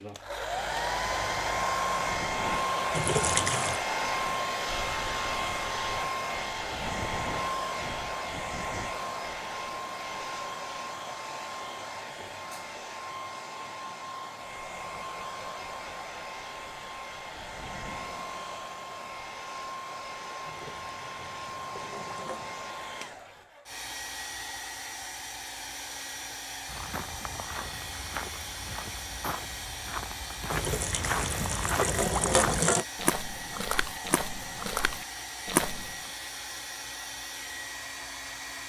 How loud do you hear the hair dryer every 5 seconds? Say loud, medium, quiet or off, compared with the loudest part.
loud, loud, medium, medium, medium, medium, medium, medium.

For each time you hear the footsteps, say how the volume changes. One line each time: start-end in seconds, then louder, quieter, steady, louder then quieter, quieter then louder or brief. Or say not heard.
26.6-36.1 louder.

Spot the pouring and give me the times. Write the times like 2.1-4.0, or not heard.
2.9-3.8, 20.4-22.6, 30.5-32.9.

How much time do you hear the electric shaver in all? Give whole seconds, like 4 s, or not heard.
not heard.